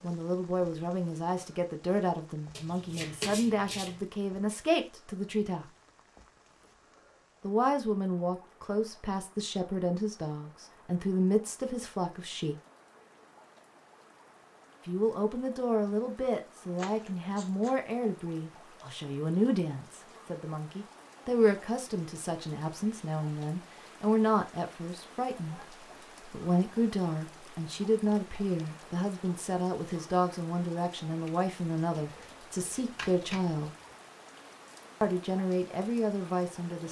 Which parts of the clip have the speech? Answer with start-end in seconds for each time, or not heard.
0.0-5.7, 7.4-12.6, 14.8-33.7, 35.0-36.8.